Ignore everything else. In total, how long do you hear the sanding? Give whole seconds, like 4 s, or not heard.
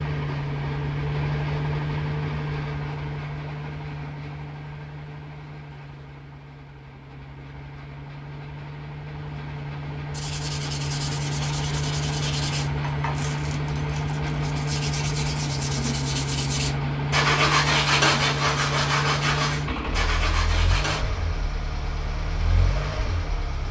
11 s.